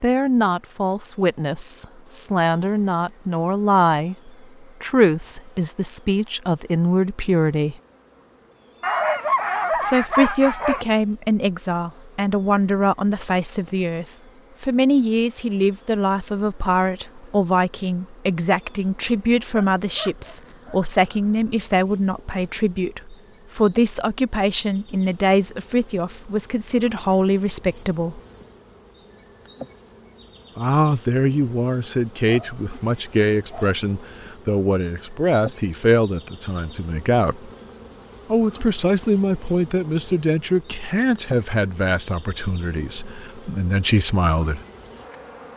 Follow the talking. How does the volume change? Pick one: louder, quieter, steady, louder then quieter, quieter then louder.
steady.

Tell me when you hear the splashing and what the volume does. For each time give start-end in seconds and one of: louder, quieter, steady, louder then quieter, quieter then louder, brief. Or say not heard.
not heard.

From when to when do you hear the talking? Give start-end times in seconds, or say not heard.
0.0-7.8, 9.8-28.2, 30.6-37.5, 38.3-44.6.